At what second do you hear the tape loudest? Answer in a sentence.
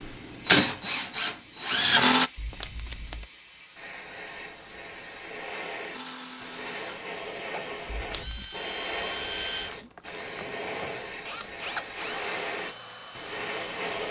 The loudest moment of the tape is at 3 seconds.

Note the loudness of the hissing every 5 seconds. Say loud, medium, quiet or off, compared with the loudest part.
medium, loud, loud.